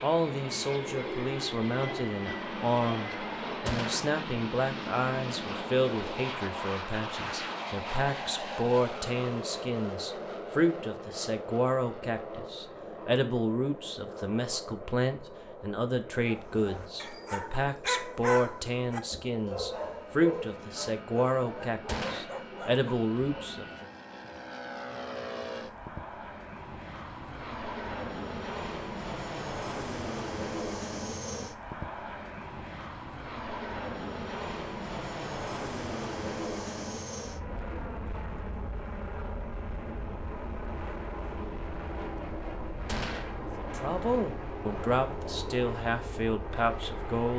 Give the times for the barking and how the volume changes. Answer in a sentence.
The barking can be heard from 16.2 to 23.6 s, getting louder then quieter.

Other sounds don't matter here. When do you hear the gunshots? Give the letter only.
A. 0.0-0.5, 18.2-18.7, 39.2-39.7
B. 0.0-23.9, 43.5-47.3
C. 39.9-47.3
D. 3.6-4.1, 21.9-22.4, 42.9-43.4
D.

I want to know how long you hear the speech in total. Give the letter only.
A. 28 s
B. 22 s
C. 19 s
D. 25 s
A.